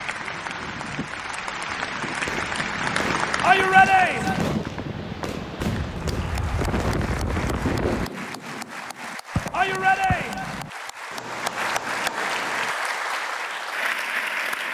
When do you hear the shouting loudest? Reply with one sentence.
The loudest moment of the shouting is at 4 seconds.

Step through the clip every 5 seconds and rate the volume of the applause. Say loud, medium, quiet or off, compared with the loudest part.
loud, medium, loud.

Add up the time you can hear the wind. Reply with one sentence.
The wind can be heard for 8 seconds in total.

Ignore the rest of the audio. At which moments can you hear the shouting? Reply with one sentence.
The shouting can be heard from 3.4 to 4.5 s and from 9.5 to 10.6 s.